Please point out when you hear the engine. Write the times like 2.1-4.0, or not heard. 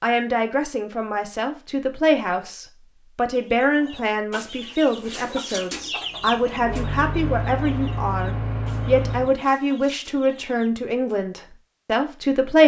6.0-9.4.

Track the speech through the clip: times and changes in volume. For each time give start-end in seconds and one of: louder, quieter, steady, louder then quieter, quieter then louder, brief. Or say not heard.
0.0-12.6 steady.